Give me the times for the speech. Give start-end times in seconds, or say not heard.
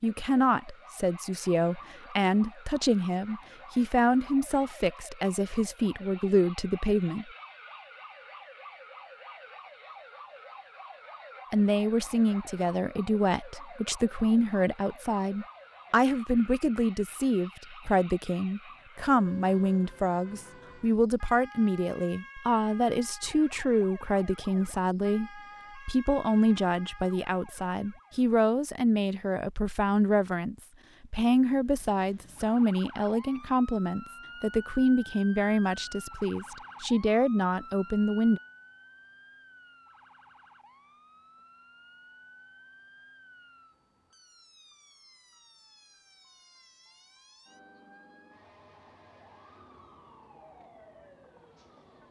0.0-7.2, 11.5-38.4.